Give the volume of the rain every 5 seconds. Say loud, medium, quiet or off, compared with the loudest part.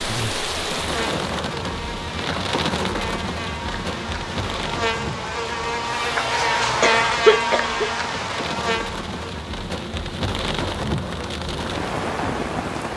loud, medium, loud.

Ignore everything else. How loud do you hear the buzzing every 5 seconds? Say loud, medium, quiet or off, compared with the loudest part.
medium, loud, off.